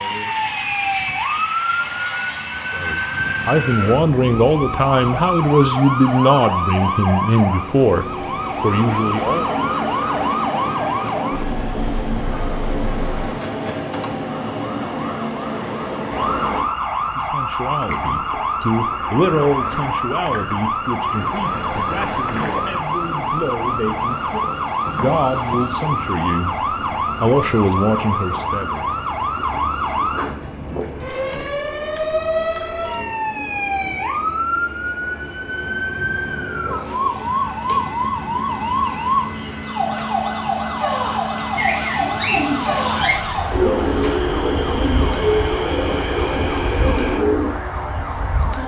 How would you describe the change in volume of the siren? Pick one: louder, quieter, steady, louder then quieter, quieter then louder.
steady.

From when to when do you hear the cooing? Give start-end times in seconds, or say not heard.
41.5-47.5.